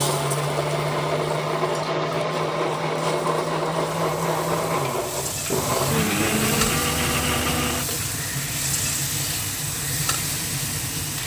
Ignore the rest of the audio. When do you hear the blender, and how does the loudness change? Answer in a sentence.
The blender can be heard from 0.0 to 11.2 s, getting quieter.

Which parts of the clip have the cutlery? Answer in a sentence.
You can't hear the cutlery here.